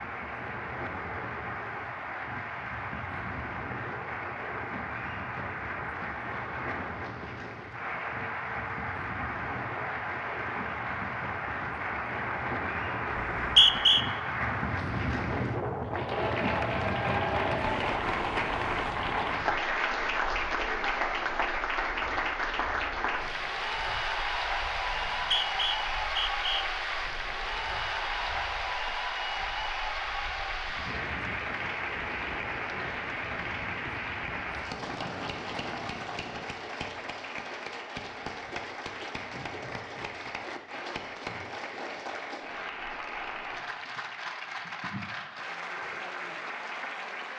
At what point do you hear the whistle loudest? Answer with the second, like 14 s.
14 s.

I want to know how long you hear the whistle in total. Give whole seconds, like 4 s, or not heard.
3 s.